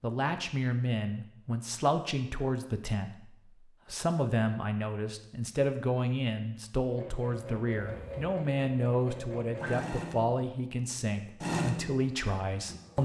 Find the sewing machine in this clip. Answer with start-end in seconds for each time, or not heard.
6.8-13.0.